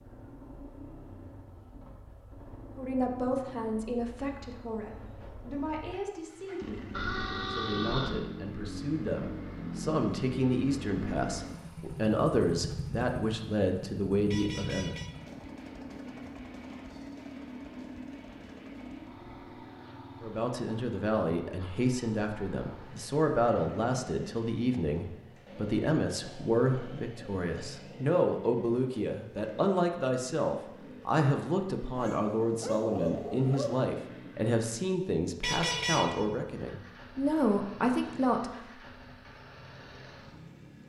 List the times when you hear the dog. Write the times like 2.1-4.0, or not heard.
31.9-33.8.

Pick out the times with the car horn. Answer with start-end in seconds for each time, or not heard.
6.9-8.2, 14.3-15.1, 35.4-36.1.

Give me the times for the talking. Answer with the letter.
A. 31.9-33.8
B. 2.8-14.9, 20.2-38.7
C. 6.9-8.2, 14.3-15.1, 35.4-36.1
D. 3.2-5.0
B.